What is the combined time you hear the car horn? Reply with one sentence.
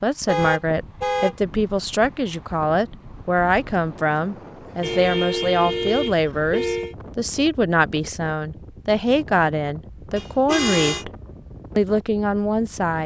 The car horn can be heard for 4 seconds in total.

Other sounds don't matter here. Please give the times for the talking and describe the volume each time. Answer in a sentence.
You can hear the talking from 0.0 to 11.1 s, at a steady volume; and briefly from 11.8 to 13.0 s.